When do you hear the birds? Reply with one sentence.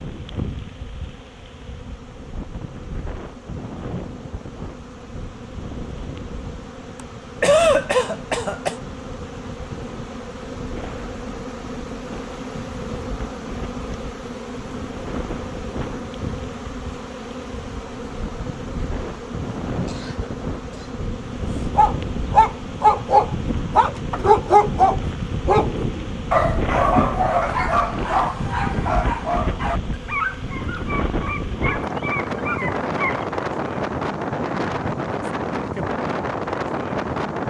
The birds can't be heard in this clip.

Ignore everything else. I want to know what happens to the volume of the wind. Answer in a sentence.
The loudness of the wind goes up.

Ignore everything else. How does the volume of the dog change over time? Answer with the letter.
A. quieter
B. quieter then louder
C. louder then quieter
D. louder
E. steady
A.